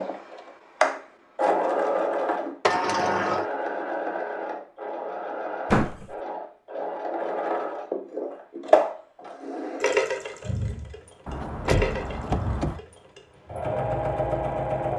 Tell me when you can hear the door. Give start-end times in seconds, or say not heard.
2.6-3.5, 5.7-6.2, 11.2-12.8.